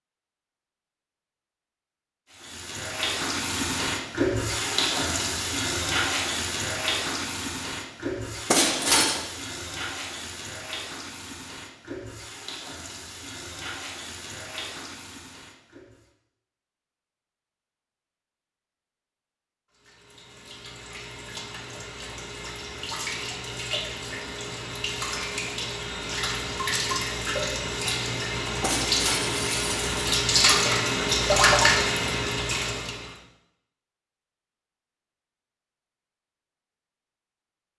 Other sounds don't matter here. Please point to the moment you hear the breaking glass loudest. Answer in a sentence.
The volume of the breaking glass peaks at 9 seconds.